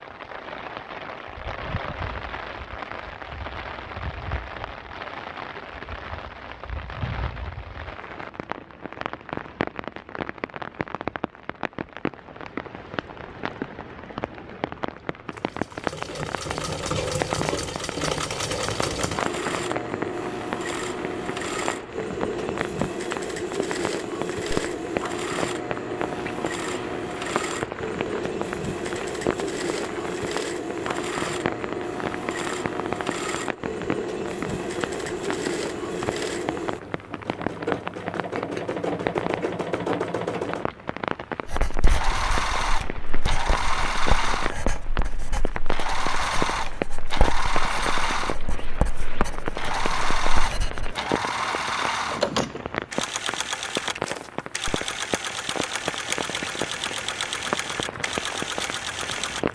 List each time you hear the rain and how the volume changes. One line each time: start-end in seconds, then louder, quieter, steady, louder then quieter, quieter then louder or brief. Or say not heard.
0.0-59.5 steady.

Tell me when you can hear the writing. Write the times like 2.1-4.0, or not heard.
41.5-51.0.